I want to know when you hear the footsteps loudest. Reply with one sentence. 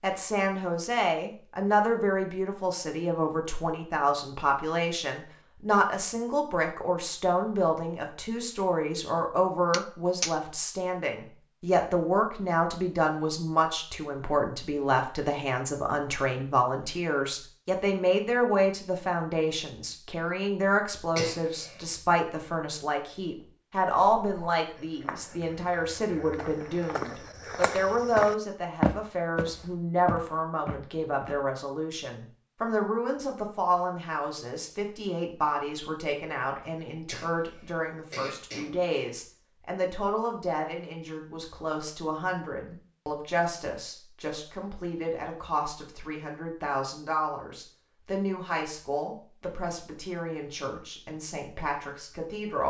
The loudest moment of the footsteps is at 29 seconds.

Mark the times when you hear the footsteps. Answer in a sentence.
The footsteps can be heard from 24.1 to 31.4 s.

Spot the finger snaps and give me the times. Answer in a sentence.
You can hear the finger snaps from 9.7 to 10.3 s.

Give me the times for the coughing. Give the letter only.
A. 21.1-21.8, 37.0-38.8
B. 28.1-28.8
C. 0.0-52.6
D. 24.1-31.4
A.